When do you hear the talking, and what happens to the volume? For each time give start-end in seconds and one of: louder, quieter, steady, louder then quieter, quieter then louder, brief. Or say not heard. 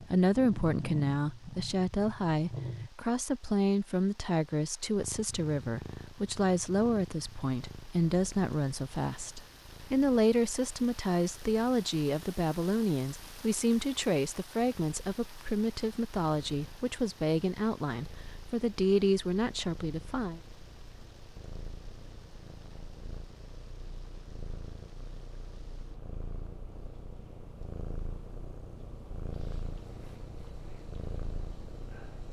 0.0-20.4 steady.